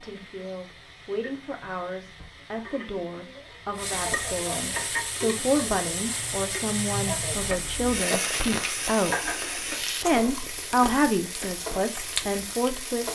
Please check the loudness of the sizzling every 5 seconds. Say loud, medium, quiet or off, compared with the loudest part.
medium, loud, medium.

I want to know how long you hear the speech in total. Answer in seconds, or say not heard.
12 s.